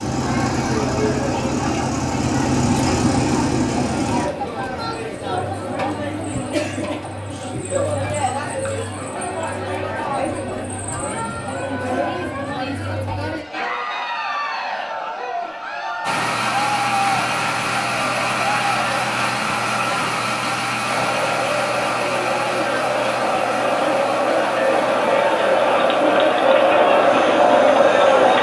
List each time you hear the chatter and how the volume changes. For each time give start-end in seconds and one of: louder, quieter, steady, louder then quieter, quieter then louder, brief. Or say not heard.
0.1-28.3 louder.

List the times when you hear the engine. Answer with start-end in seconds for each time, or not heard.
0.0-4.3, 16.0-28.3.